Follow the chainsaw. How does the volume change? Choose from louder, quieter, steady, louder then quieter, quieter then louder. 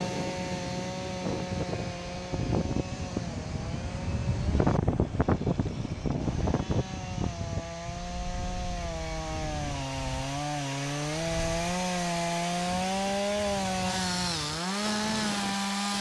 quieter then louder.